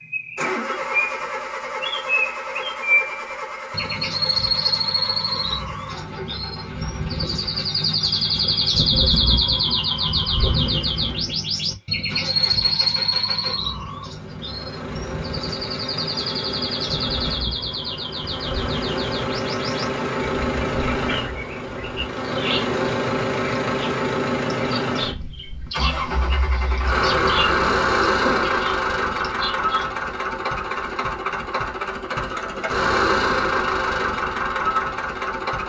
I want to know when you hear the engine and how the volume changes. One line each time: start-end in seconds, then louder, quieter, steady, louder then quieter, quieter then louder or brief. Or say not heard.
0.3-35.6 quieter then louder.